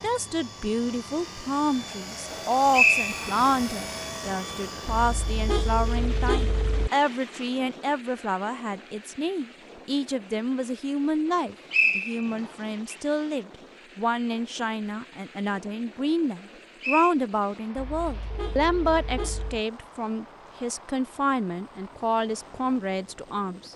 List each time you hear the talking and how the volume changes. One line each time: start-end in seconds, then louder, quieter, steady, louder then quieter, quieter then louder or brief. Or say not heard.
0.0-23.7 steady.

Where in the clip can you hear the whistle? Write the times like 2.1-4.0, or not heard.
2.3-3.5, 11.3-12.9, 16.4-17.1.